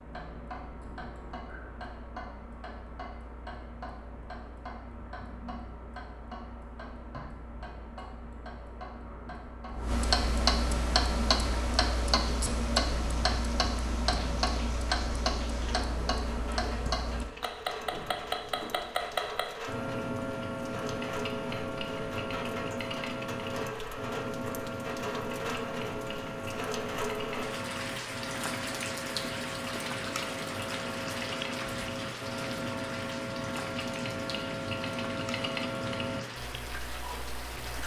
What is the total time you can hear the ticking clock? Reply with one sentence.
You can hear the ticking clock for 38 seconds altogether.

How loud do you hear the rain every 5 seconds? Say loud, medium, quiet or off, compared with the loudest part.
off, off, medium, medium, loud, loud, loud, medium.